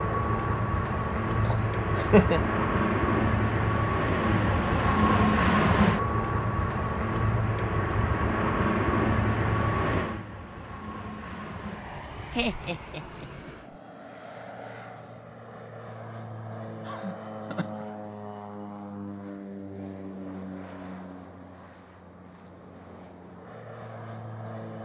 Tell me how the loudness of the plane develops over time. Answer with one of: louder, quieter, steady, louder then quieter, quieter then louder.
quieter.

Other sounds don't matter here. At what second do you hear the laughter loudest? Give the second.
2 s.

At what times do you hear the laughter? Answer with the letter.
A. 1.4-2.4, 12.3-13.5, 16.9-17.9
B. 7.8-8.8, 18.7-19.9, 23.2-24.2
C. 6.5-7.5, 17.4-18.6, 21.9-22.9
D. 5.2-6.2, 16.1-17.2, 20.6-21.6
A.